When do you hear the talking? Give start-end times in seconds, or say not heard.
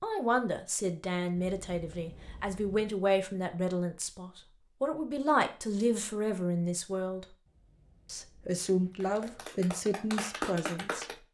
0.0-7.3, 8.1-11.1.